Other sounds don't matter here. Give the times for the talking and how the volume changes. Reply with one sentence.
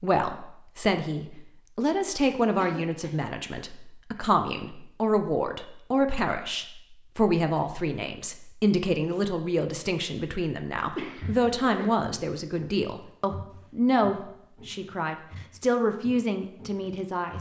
You can hear the talking from 0.0 to 17.3 s, at a steady volume.